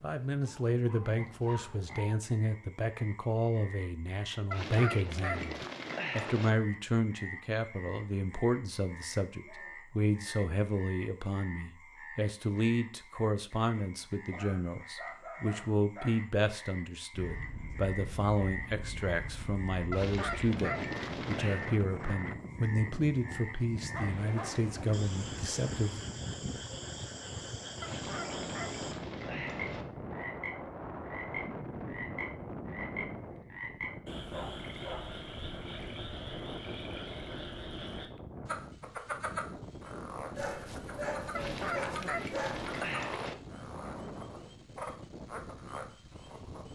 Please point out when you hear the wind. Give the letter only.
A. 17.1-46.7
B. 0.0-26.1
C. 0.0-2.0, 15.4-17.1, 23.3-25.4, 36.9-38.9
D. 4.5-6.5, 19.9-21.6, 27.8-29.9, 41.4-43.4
A.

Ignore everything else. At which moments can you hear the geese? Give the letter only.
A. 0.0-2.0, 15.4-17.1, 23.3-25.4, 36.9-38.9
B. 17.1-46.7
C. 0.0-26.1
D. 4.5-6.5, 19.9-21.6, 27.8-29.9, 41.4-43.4
D.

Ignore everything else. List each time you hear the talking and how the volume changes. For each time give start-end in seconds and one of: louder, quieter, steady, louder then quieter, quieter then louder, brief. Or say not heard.
0.0-26.1 steady.